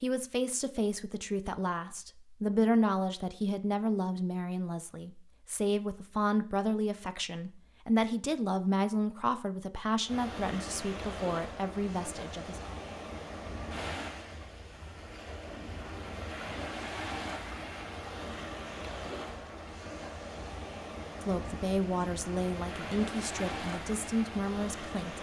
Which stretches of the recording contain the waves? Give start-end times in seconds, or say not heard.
10.1-25.1.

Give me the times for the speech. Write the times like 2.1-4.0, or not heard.
0.0-12.8, 21.2-25.1.